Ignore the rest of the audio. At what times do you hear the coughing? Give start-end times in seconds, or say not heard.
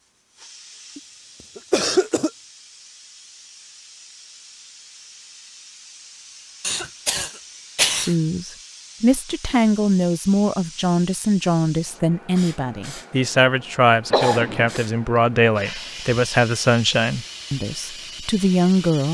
0.9-2.3, 6.6-8.2, 14.1-14.8.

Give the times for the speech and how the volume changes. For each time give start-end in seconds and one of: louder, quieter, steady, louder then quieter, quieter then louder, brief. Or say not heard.
8.0-19.0 steady.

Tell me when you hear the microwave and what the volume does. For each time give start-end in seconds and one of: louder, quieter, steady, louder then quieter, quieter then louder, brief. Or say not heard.
not heard.